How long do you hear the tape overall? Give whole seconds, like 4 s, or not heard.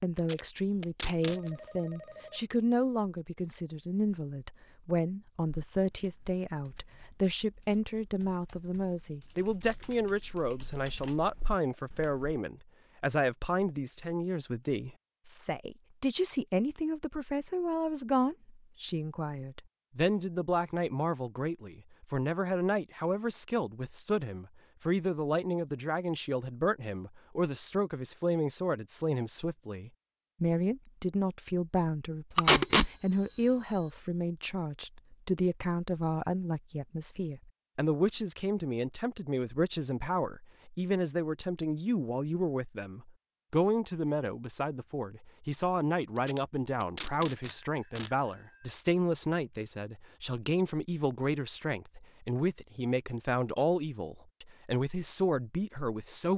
4 s.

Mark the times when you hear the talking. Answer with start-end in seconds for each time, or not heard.
0.0-56.3.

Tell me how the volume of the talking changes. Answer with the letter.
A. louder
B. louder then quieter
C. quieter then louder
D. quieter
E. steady
E.